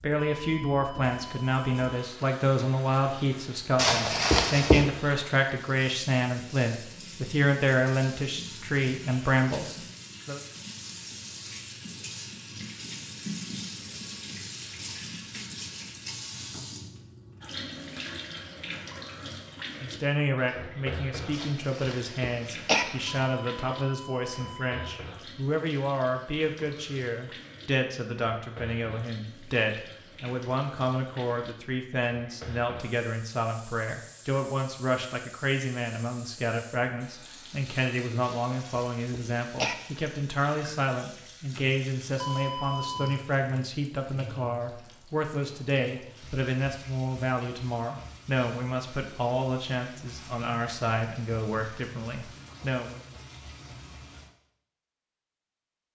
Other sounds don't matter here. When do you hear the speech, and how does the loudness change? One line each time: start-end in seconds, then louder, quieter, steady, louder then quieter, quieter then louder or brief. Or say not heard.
0.0-10.4 steady
19.8-53.0 steady.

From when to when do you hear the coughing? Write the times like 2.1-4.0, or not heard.
3.8-4.8, 21.3-22.9, 38.2-39.8.